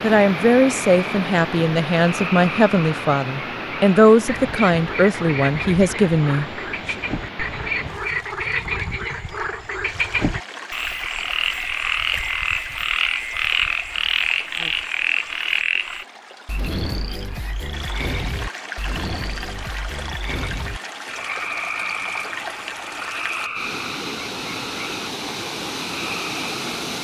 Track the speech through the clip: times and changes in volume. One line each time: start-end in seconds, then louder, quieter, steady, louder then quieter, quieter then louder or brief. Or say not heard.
0.0-7.0 steady.